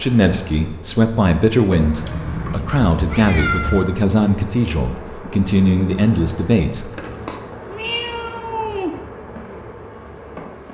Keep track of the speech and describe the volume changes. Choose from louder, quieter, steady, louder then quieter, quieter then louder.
steady.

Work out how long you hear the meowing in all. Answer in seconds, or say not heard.
3 s.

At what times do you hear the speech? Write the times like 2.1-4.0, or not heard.
0.0-6.9.